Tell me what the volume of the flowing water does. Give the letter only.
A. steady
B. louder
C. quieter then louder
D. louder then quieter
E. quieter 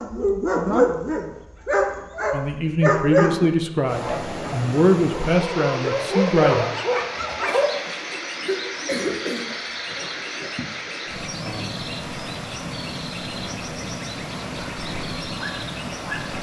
A.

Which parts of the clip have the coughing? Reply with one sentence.
The coughing can be heard from 7.5 to 9.4 s.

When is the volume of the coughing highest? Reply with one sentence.
The loudest moment of the coughing is at 9 seconds.